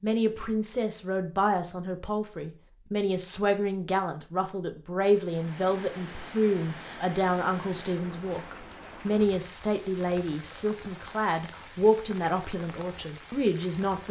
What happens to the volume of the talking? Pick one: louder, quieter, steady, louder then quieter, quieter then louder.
steady.